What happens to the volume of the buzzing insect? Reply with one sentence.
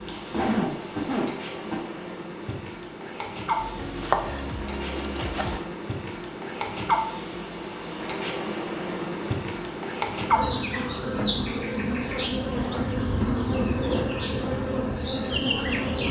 The volume of the buzzing insect goes up.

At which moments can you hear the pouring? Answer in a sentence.
The pouring can't be heard in this clip.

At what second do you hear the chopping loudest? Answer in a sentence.
The loudest moment of the chopping is at 4 seconds.